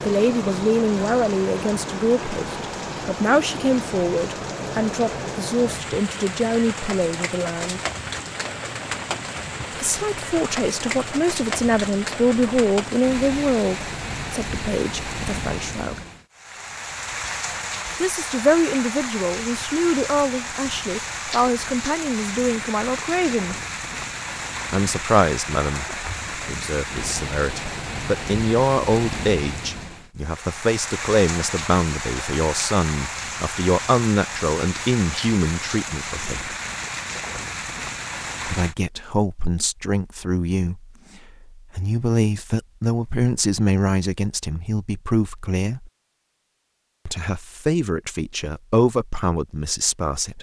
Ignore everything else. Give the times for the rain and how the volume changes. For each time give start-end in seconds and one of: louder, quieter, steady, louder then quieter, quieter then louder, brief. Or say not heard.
0.0-38.8 steady.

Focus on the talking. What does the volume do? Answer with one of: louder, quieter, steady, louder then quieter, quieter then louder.
steady.